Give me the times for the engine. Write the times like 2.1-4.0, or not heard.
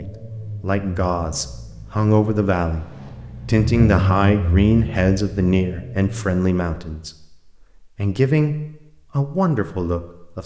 0.0-6.3.